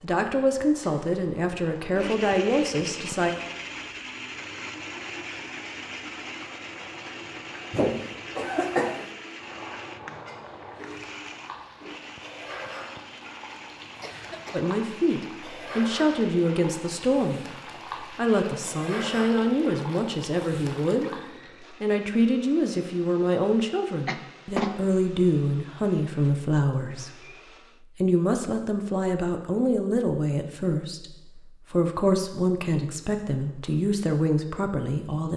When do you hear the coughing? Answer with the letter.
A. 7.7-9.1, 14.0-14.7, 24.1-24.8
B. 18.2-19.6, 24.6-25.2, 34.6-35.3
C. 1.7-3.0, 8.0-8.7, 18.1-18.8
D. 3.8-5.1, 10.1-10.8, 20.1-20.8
A.